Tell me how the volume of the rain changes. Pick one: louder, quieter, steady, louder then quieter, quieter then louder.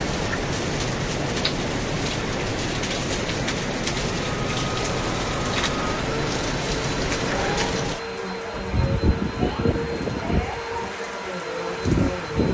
steady.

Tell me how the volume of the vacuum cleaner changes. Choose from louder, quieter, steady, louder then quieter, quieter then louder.
steady.